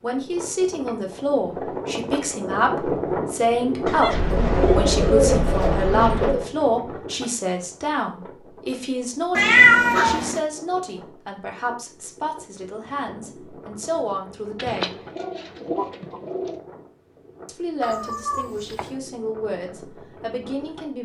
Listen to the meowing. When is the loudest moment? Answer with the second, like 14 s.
10 s.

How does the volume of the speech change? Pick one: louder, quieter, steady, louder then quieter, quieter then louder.
quieter.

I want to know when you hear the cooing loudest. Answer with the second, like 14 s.
5 s.